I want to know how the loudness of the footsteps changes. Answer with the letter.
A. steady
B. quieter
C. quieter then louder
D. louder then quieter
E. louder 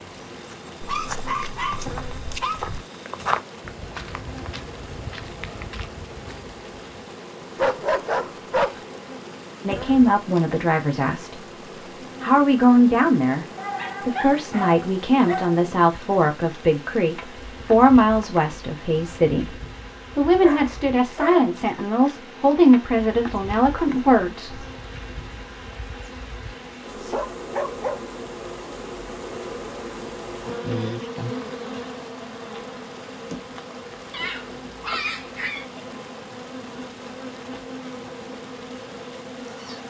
D.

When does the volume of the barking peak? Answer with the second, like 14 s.
8 s.